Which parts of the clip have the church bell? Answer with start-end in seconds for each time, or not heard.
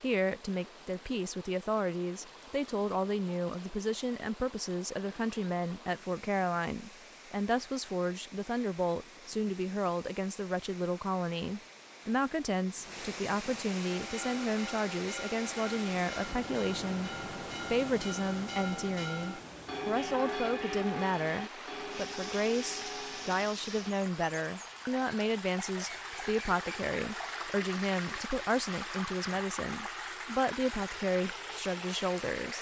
13.8-23.9.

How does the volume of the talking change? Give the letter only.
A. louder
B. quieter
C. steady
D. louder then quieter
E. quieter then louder
C.